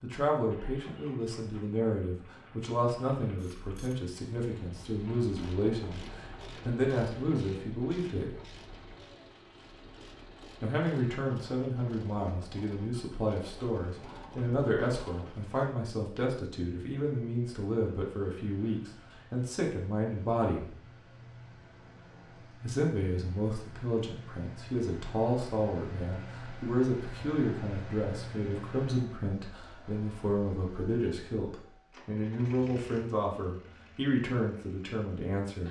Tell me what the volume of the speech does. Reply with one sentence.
The volume of the speech stays about the same.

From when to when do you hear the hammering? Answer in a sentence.
The hammering can't be heard in this clip.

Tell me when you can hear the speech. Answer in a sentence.
The speech can be heard from 0.0 to 8.3 s, from 10.6 to 20.7 s and from 22.6 to 35.6 s.